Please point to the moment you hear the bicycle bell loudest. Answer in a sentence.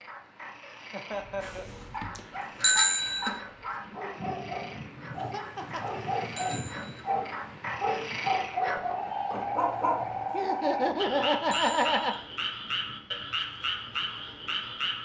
The volume of the bicycle bell peaks at 3 seconds.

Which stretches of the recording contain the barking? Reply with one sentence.
You can hear the barking from 1.1 to 10.0 s.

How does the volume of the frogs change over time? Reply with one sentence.
The volume of the frogs goes up.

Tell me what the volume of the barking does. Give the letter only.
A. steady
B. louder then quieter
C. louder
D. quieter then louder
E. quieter
C.